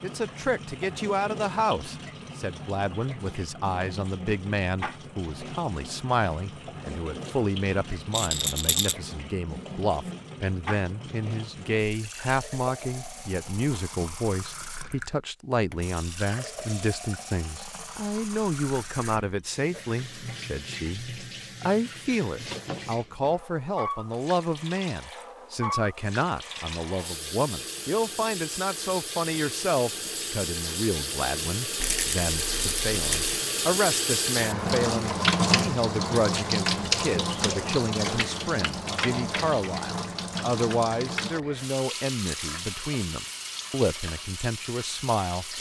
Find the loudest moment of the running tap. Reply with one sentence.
The volume of the running tap peaks at 35 seconds.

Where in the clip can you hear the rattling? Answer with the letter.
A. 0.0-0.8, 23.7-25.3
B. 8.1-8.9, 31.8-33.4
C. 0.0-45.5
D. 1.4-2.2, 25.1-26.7
B.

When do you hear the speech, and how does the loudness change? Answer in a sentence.
You can hear the speech from 0.0 to 45.5 s, at a steady volume.